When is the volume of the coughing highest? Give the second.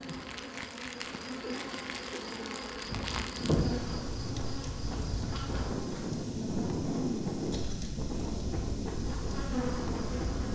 2 s.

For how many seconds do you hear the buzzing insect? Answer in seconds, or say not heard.
8 s.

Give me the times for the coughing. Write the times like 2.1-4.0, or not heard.
1.4-2.6, 7.5-7.9.